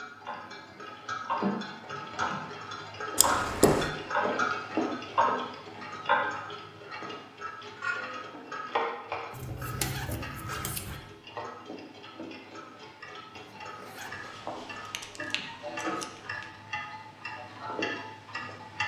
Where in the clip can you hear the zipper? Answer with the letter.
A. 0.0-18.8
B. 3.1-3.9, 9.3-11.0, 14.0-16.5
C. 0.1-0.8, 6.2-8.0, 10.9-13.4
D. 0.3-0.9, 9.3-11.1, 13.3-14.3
D.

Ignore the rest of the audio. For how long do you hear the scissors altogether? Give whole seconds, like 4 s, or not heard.
5 s.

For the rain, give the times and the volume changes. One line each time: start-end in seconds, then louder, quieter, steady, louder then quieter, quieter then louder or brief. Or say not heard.
not heard.